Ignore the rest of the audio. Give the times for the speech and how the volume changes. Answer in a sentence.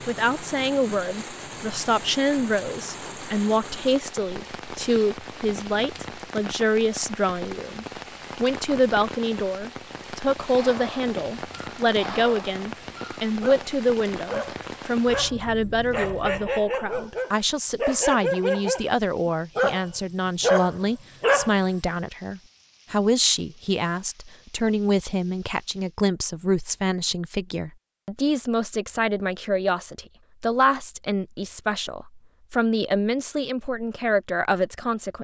You can hear the speech from 0.1 to 35.1 s, at a steady volume.